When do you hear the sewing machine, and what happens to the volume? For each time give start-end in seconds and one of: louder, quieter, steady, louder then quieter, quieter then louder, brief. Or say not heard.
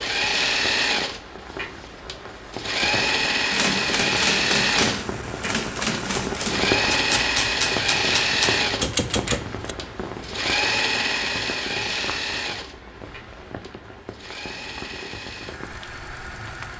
0.0-16.7 quieter.